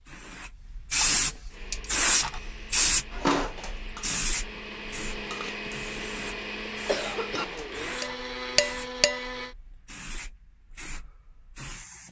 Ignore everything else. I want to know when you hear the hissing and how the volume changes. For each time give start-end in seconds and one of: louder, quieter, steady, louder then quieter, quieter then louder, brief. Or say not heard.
0.0-12.0 quieter.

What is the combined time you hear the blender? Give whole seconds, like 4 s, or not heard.
8 s.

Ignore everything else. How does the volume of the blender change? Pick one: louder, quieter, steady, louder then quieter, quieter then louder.
louder.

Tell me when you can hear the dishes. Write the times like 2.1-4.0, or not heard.
3.1-5.5, 7.3-9.2.